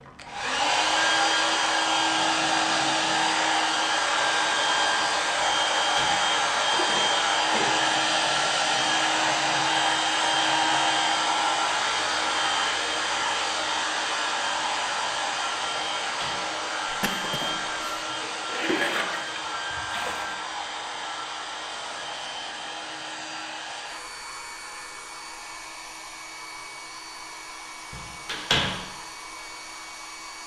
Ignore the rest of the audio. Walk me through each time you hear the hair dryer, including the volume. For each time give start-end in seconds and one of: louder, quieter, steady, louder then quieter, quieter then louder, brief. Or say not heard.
0.0-30.4 quieter.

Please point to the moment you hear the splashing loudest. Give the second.
19 s.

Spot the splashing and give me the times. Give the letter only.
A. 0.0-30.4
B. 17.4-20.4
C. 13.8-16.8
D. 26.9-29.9
B.